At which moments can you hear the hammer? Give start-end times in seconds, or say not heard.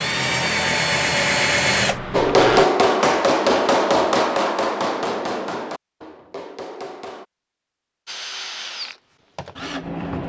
2.1-7.2.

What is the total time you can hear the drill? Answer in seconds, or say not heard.
5 s.